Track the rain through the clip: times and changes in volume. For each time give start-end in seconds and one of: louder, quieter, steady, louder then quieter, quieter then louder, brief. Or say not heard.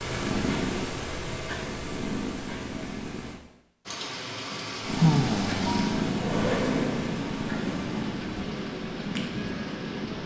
3.9-10.2 steady.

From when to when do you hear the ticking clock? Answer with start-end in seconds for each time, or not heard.
not heard.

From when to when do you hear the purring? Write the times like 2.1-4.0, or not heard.
0.0-3.4, 4.8-10.2.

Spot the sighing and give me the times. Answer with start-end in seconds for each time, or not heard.
4.5-6.0.